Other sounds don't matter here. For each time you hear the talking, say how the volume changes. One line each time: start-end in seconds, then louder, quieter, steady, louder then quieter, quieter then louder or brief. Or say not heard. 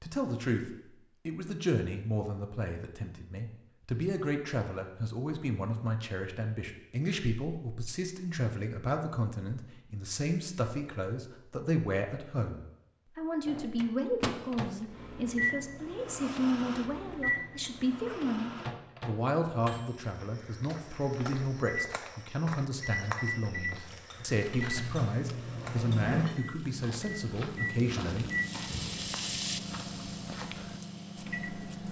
0.0-28.3 steady.